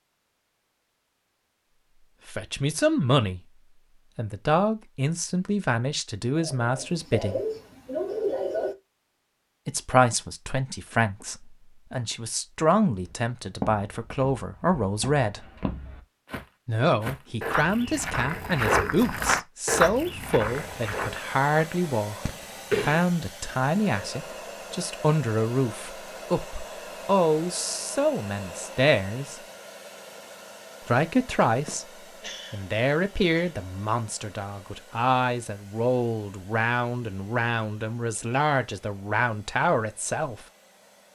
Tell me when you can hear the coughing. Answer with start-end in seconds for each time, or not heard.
6.3-8.8, 22.2-23.1, 31.6-33.5.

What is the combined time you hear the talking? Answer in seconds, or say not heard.
33 s.